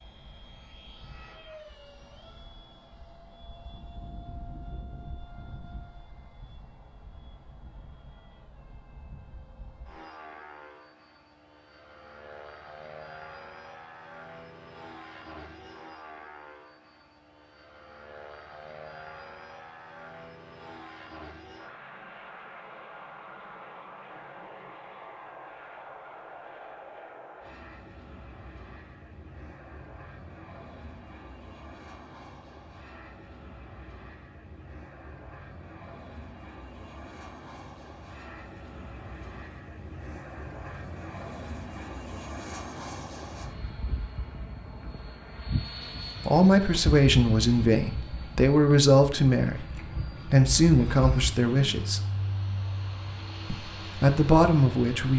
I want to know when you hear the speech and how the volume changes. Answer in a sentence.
The speech can be heard from 46.2 to 52.0 s, at a steady volume; and briefly from 53.5 to 55.1 s.